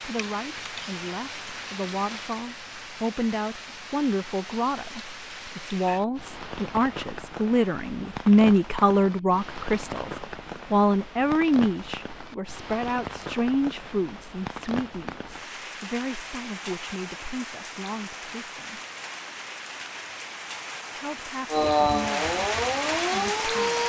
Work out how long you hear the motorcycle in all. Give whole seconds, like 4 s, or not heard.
not heard.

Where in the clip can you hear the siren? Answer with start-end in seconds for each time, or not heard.
21.5-23.8.